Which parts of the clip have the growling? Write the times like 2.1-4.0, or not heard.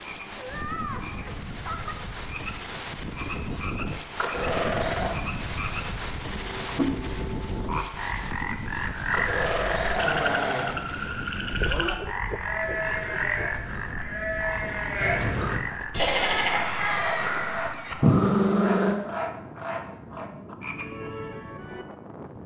4.2-5.2, 9.1-10.8, 18.0-19.0.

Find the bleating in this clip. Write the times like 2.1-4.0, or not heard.
11.4-18.3.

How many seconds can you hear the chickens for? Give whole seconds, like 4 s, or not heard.
not heard.